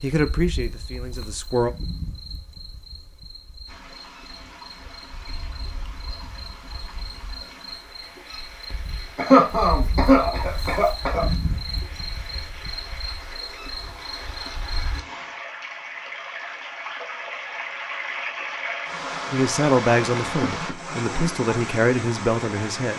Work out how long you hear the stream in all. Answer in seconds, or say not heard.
19 s.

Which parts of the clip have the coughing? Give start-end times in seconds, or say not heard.
9.2-11.2.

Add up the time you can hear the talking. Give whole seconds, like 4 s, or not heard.
5 s.